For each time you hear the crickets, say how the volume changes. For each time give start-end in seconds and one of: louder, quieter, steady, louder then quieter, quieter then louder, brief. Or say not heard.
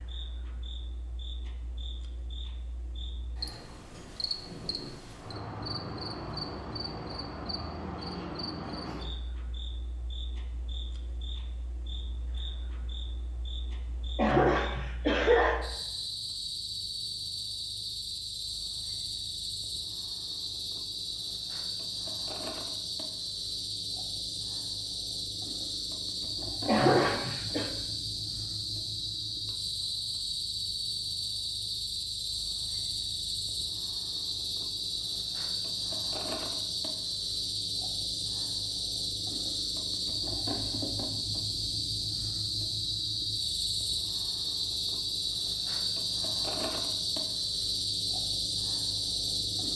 0.0-49.7 louder.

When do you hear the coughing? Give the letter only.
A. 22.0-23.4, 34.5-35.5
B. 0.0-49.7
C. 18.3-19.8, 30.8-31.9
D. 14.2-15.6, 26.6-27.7
D.